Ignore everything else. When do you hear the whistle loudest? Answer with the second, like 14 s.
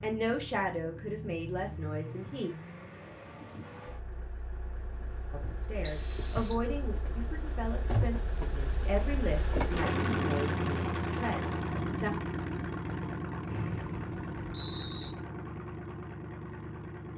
6 s.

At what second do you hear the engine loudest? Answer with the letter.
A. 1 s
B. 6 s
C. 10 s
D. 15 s
C.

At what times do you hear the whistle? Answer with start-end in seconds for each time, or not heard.
5.8-6.7, 13.5-15.1.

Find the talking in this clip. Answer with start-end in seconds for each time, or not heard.
0.0-2.5, 5.3-12.1.